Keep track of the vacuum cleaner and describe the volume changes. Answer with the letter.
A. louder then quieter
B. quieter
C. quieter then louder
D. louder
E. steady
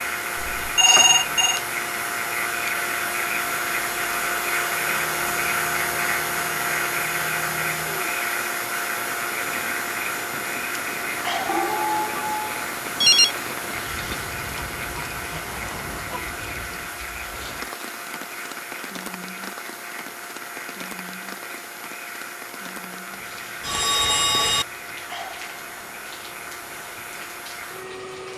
B.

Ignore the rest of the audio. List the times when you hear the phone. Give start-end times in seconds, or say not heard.
0.6-1.6, 11.4-13.3, 23.6-24.6.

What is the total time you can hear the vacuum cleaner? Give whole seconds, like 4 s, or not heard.
28 s.